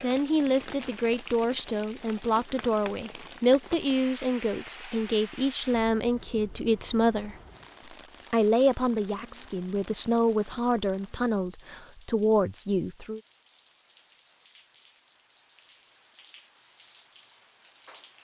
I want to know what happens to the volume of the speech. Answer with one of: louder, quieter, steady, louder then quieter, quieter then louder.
steady.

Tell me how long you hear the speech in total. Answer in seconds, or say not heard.
12 s.